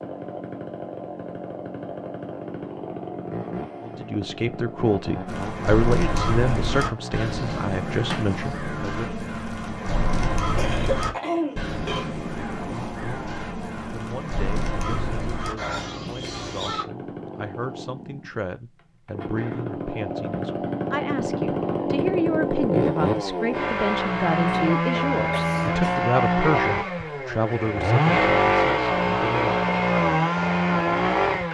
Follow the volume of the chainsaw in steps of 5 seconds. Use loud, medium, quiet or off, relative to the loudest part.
quiet, quiet, quiet, quiet, loud, loud, loud.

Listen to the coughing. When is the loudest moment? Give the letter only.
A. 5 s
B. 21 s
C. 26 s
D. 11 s
D.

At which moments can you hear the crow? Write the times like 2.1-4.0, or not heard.
5.2-16.9.